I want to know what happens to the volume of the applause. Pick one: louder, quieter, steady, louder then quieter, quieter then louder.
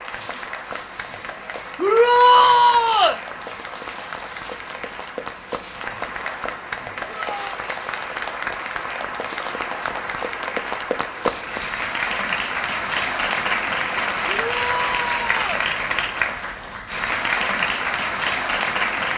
louder.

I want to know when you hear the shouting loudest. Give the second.
2 s.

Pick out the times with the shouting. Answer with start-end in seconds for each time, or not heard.
1.8-3.2, 7.0-7.7, 14.2-15.7.